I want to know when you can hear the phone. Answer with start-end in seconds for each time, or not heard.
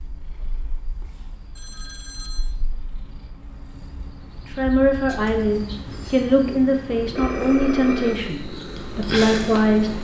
1.6-2.5, 7.2-8.3.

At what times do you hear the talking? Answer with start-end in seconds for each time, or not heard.
4.5-10.0.